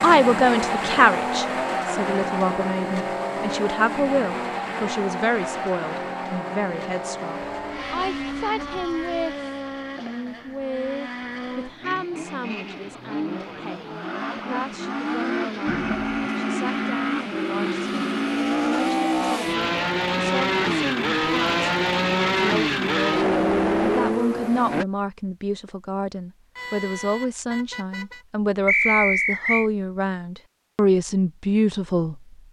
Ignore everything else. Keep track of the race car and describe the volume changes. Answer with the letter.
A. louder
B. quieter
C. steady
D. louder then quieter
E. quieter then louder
E.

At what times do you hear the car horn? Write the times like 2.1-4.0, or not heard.
7.4-9.2, 15.7-16.3, 26.6-28.2.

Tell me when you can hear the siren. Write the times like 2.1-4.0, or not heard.
not heard.